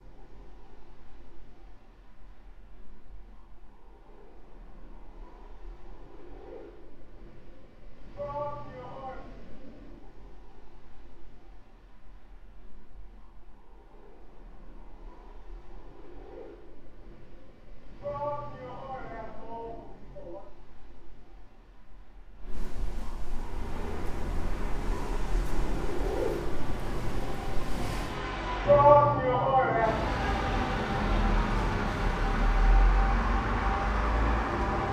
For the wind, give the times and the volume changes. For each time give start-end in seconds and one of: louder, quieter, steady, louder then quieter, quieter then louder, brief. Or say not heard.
0.0-28.2 louder.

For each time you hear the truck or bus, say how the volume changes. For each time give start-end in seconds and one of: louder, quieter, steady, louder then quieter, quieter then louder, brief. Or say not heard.
23.3-34.8 louder.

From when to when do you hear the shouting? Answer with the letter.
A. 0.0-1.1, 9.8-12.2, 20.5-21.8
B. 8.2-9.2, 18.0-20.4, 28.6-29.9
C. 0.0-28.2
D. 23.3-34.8
B.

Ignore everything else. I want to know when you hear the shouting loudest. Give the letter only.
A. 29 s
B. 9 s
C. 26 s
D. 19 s
A.